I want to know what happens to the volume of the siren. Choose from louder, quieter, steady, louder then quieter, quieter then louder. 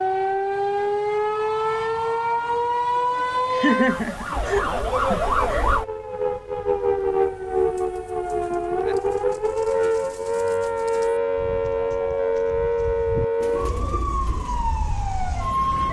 steady.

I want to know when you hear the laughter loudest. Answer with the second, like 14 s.
4 s.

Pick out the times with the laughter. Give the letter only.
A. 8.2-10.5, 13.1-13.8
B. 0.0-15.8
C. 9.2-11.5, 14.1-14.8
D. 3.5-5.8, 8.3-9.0
D.